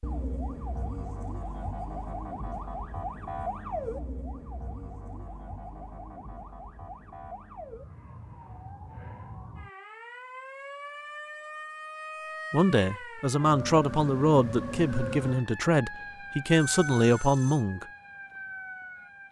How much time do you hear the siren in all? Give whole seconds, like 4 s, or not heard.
19 s.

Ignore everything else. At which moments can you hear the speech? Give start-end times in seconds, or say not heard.
12.5-17.9.